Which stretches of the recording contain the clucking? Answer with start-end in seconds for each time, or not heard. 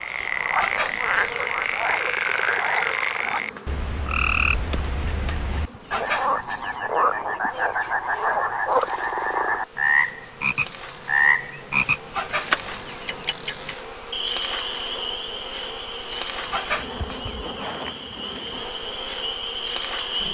0.2-2.1, 5.5-8.4, 11.8-13.2, 16.1-17.6.